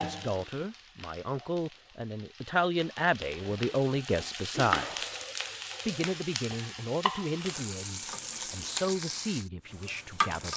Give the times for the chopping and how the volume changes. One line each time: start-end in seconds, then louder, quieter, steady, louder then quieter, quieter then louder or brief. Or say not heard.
not heard.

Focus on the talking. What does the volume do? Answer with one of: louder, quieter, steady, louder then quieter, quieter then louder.
louder then quieter.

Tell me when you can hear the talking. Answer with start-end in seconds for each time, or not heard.
0.0-5.2, 5.8-10.5.